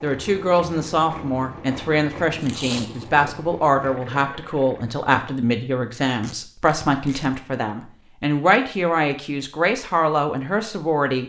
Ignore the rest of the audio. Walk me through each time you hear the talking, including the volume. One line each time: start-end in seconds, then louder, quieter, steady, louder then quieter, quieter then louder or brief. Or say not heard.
0.0-11.2 steady.